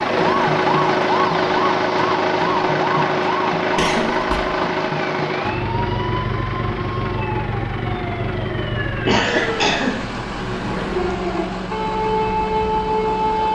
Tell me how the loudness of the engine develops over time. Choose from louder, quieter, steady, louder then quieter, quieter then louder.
quieter.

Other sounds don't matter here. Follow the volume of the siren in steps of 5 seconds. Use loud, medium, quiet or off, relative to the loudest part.
loud, medium, loud.